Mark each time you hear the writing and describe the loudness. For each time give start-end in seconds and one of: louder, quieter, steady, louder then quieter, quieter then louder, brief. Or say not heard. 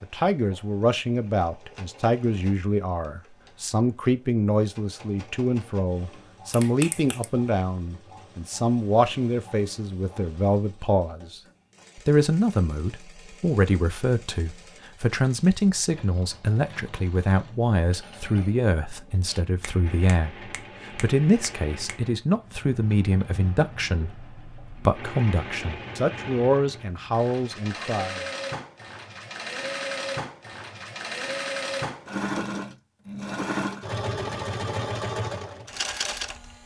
not heard.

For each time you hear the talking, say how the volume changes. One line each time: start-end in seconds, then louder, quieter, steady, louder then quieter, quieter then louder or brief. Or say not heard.
0.0-28.2 steady.